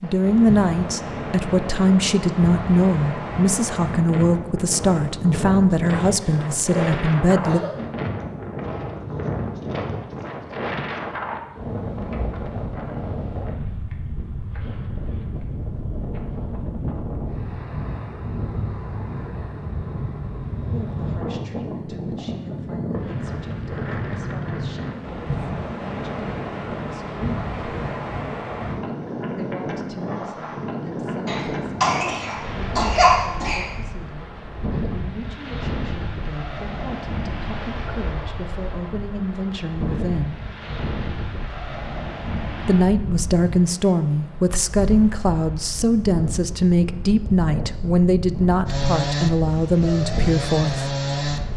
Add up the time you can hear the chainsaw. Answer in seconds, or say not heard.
3 s.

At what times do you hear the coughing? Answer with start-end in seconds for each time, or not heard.
5.9-7.8, 31.2-33.6.